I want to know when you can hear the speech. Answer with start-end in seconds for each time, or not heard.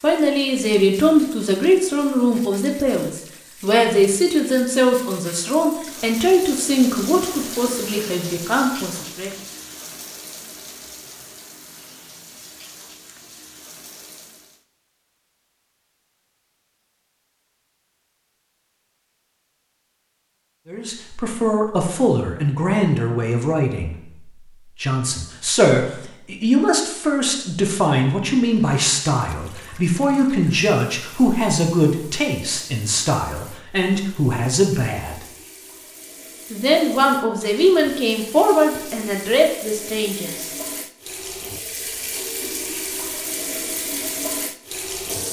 0.0-9.3, 20.6-24.1, 24.8-35.2, 36.5-40.5.